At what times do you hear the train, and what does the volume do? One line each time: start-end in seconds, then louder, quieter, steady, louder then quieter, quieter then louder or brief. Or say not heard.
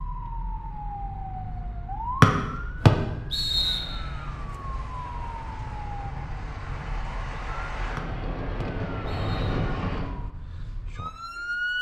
3.5-10.1 louder.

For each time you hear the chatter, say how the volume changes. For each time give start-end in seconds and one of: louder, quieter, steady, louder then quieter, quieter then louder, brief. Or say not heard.
not heard.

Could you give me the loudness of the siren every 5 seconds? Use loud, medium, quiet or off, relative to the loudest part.
medium, medium, loud.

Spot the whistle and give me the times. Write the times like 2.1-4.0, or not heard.
2.2-3.9, 8.0-9.7.